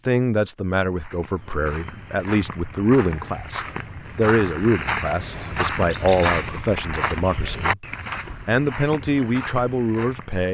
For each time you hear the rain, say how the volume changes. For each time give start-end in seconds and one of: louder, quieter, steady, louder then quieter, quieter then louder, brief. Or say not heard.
not heard.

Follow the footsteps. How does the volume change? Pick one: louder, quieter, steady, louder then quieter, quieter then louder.
louder then quieter.